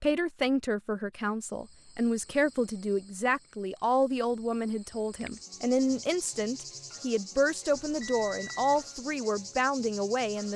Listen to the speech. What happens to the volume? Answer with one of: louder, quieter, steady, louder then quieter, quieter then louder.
steady.